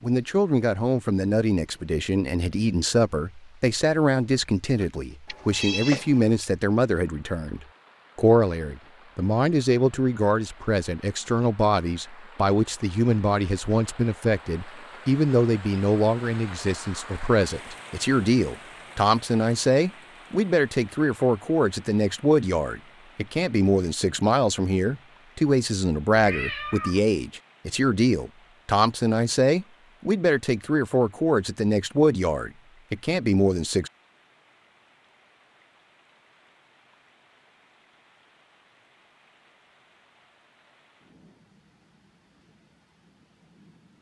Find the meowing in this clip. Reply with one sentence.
The meowing can be heard from 5.2 to 6.2 s and from 26.1 to 27.0 s.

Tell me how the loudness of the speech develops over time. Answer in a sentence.
The volume of the speech stays about the same.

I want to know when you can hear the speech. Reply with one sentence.
The speech can be heard from 0.0 to 33.9 s.